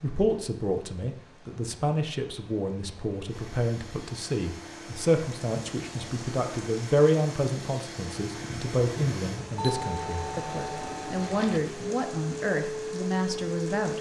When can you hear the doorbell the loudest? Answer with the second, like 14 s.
10 s.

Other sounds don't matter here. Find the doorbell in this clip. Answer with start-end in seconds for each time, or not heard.
9.6-11.6.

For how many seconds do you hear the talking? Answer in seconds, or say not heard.
14 s.